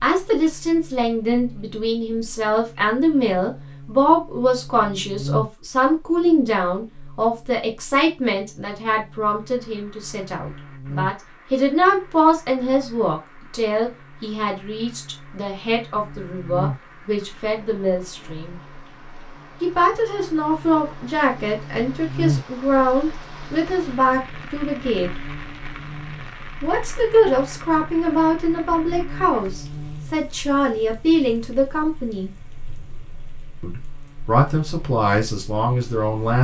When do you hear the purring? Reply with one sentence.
The purring can't be heard in this clip.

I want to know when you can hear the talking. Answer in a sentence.
The talking can be heard from 0.0 to 18.6 s, from 19.6 to 25.1 s, from 26.6 to 32.3 s and from 33.6 to 36.3 s.